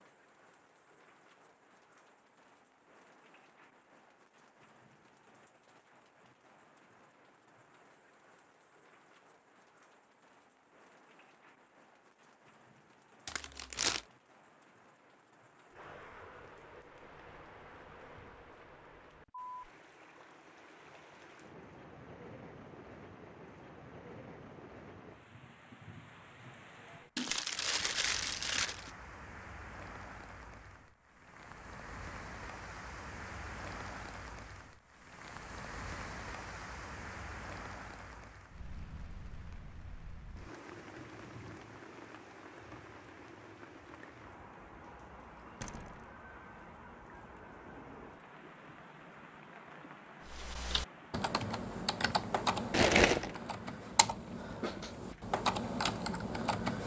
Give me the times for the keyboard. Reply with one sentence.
You can hear the keyboard from 50.2 to 56.8 s.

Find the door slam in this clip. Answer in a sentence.
You can hear the door slam from 45.6 to 46.1 s.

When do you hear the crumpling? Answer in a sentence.
You can hear the crumpling from 13.2 to 14.1 s, from 27.1 to 28.9 s and from 52.7 to 53.4 s.